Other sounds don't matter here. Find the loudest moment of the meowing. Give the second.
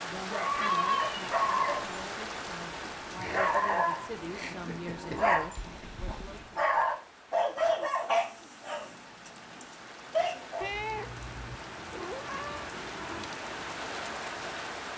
11 s.